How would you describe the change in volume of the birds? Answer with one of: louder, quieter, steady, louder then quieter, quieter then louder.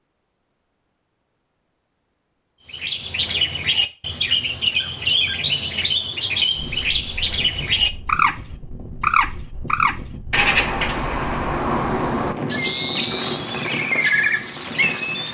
steady.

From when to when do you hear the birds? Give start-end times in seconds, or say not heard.
2.6-15.2.